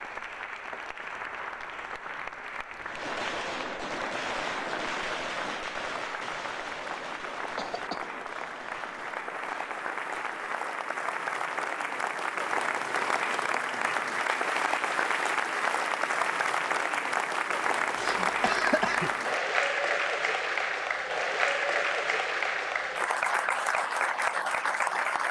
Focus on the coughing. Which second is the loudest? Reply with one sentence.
The loudest moment of the coughing is at 19 seconds.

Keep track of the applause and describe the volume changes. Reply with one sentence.
The loudness of the applause goes up.